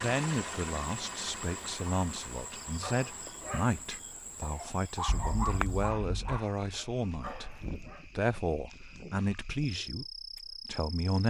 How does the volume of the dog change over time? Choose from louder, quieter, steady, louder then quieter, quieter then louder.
louder then quieter.